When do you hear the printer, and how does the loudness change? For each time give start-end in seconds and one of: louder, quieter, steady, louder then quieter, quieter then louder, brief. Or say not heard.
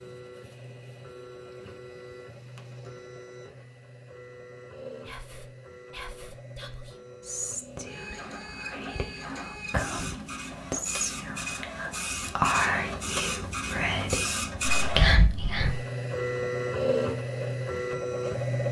0.0-18.6 louder.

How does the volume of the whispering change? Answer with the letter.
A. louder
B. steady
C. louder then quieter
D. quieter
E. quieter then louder
A.